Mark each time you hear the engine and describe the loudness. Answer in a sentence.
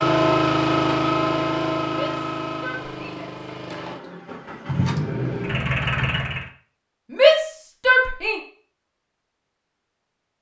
The engine can be heard from 0.0 to 6.5 s, getting quieter then louder.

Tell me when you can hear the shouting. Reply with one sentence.
The shouting can be heard from 1.9 to 3.4 s and from 7.1 to 8.3 s.